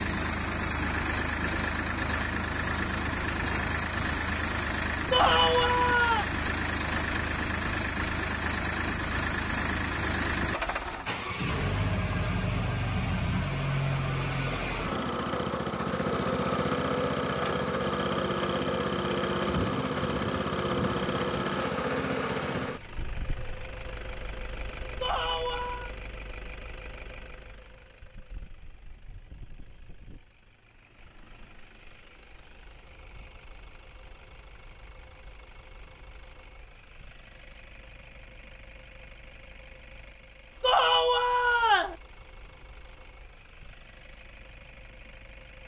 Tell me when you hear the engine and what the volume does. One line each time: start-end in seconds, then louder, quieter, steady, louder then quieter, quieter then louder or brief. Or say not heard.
0.0-45.6 quieter.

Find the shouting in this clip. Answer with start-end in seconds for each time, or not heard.
5.1-6.2, 25.0-25.9, 40.6-42.0.